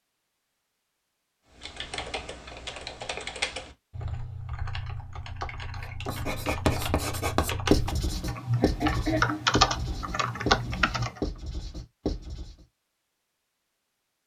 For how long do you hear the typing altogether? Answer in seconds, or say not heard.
10 s.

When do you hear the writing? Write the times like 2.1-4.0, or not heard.
5.8-12.6.